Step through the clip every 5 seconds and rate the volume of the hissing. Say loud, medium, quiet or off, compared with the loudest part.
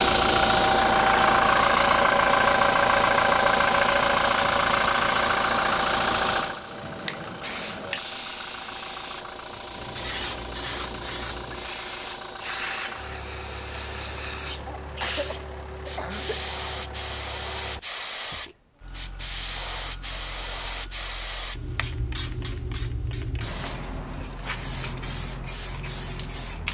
off, loud, loud, loud, loud, loud.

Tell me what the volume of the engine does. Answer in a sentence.
The volume of the engine goes down.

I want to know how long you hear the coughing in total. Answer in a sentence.
The coughing can be heard for 2 seconds in total.